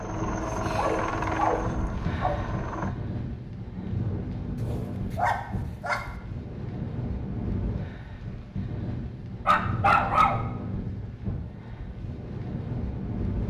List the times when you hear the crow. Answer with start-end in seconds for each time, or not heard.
not heard.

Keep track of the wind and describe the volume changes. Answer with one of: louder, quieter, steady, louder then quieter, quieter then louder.
steady.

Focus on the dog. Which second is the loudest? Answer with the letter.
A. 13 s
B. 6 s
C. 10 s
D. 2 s
C.